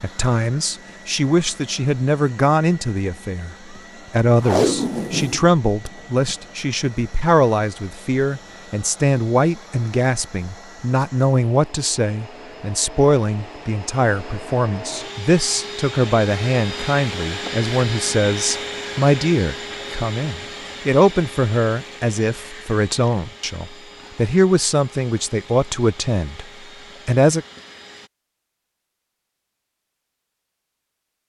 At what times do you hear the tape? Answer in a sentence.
The tape can be heard from 4.4 to 6.3 s.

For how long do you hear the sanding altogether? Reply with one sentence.
The sanding can't be heard in this clip.